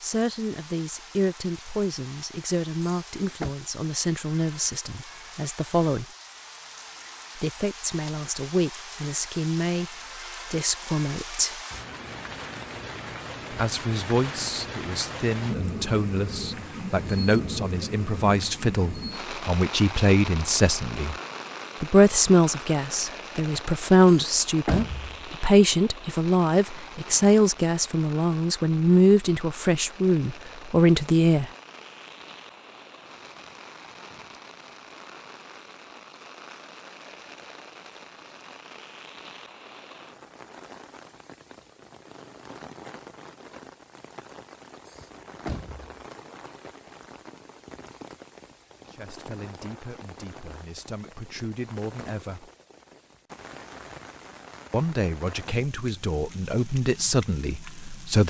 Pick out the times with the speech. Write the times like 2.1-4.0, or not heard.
0.0-6.0, 7.3-11.6, 13.5-21.1, 21.8-31.5, 48.9-52.5, 54.7-58.2.